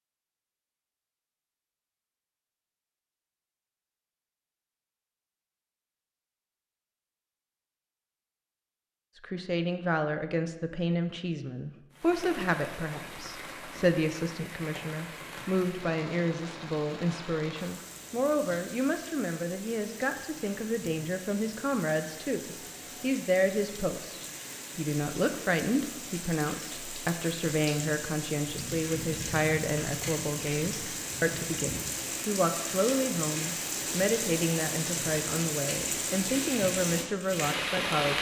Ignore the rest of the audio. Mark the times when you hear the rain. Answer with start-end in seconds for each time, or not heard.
11.9-38.1.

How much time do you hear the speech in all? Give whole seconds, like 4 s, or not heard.
29 s.